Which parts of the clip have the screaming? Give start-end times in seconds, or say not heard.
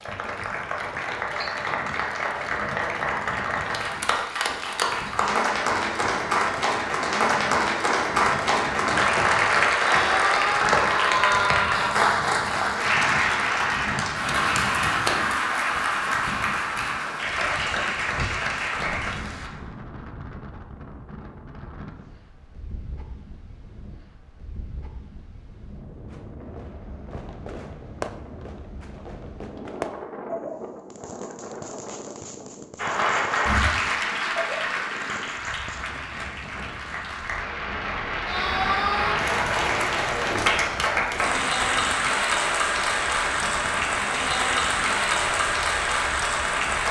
9.8-11.9, 38.2-39.2.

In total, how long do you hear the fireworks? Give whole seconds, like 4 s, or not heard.
10 s.